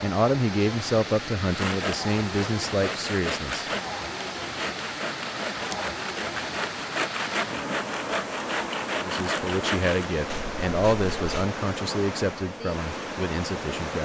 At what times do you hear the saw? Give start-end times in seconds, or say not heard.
1.4-11.5.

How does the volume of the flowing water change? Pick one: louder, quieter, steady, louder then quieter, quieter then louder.
steady.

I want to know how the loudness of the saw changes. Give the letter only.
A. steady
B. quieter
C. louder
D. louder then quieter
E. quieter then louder
A.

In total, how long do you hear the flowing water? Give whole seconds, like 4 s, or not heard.
14 s.